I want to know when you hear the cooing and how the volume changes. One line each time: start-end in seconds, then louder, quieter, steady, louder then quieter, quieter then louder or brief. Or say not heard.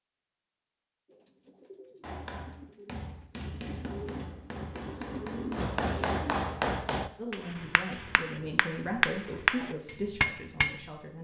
1.1-6.3 louder.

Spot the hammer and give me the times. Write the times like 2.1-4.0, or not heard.
2.0-10.8.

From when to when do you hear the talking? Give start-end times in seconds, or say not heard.
7.2-11.1.